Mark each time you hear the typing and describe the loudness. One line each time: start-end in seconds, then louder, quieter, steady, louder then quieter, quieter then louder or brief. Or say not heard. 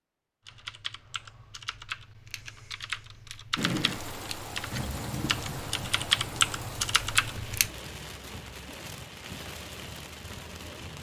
0.5-7.7 louder.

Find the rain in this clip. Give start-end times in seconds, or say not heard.
3.5-10.9.